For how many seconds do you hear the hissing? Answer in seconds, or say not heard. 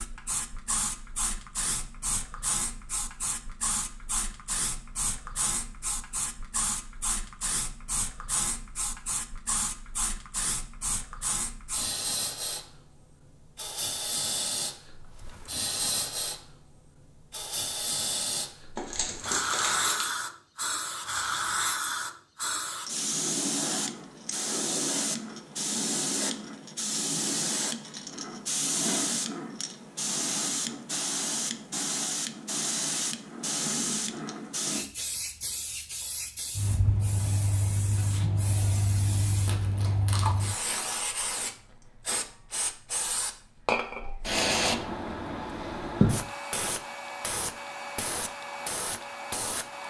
50 s.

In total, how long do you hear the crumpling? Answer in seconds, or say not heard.
3 s.